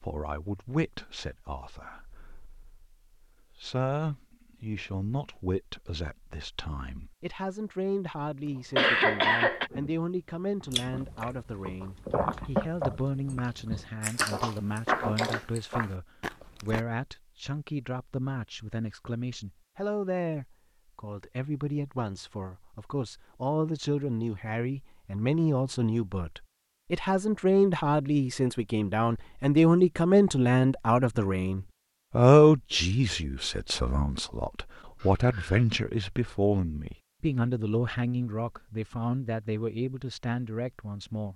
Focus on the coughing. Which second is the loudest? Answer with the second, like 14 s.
9 s.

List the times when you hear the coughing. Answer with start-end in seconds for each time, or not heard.
8.8-9.7, 35.0-35.6.